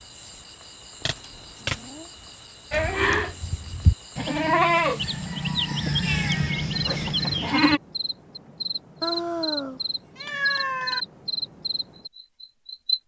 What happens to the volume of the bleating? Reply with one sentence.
The volume of the bleating goes up, then down.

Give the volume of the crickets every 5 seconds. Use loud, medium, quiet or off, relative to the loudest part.
quiet, loud, loud.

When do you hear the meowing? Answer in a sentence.
The meowing can be heard from 1.0 to 2.0 s, from 6.0 to 7.2 s and from 9.0 to 11.1 s.